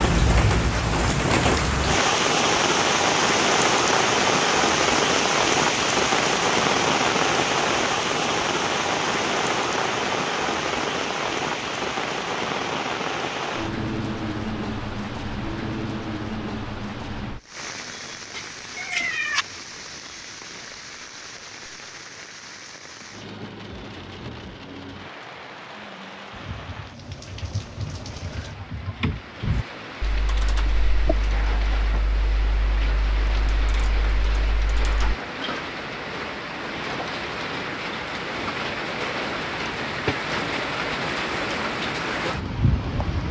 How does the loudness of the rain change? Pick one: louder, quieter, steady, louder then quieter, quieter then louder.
quieter then louder.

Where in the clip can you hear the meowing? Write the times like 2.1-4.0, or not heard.
18.3-19.4.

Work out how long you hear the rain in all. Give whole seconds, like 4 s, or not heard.
43 s.